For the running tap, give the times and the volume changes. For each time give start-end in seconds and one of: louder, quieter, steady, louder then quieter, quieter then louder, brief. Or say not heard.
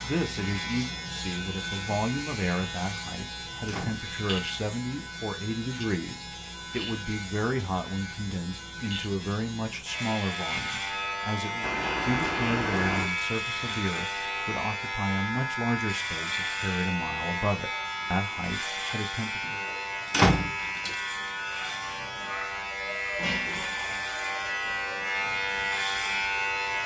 not heard.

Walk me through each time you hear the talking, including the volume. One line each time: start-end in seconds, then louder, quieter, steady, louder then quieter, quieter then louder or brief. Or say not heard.
0.0-19.6 steady.